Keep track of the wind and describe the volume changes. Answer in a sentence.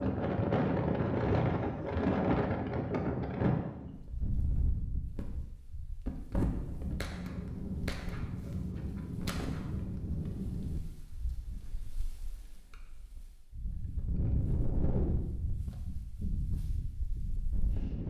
The volume of the wind goes down, then up.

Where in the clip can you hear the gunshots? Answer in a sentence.
You can hear the gunshots from 6.8 to 10.8 s.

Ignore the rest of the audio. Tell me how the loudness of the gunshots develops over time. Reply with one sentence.
The loudness of the gunshots stays about the same.